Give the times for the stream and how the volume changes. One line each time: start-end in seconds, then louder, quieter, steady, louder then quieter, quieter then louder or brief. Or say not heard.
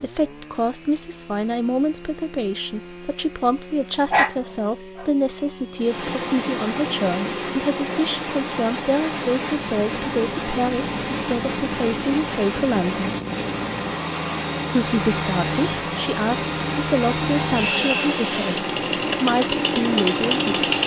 5.8-20.8 steady.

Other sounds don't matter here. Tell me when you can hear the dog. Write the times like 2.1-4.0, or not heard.
4.1-5.0.